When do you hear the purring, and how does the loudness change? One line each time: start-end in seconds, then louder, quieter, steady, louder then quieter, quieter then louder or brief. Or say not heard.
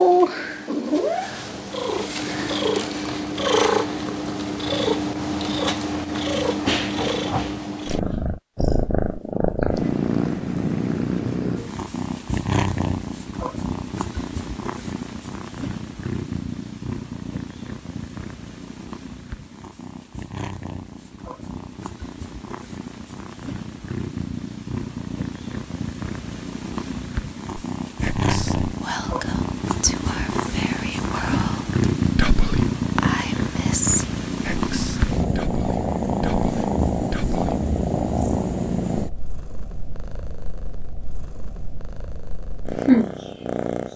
0.0-43.9 quieter then louder.